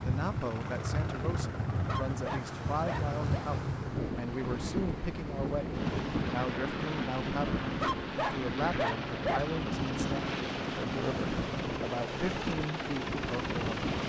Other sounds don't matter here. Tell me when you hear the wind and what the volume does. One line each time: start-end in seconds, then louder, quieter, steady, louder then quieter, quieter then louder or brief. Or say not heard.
0.0-14.0 steady.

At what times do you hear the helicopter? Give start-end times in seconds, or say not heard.
0.0-14.0.